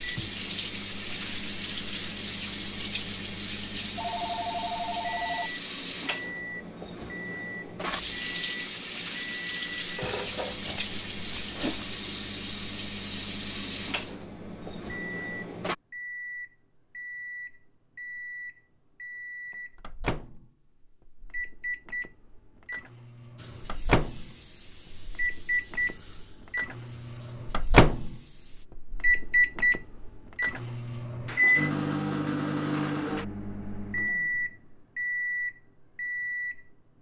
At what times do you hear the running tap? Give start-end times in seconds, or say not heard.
0.0-15.8, 23.4-28.6.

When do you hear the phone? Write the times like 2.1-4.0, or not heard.
4.0-5.5.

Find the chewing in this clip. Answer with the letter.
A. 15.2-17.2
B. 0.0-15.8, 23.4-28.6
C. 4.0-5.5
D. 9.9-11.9
D.